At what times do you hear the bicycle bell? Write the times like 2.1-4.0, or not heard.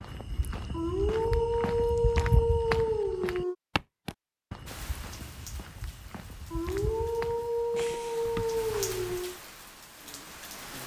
7.8-8.4.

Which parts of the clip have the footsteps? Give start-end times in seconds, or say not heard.
0.0-9.2.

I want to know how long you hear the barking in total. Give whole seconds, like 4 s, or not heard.
6 s.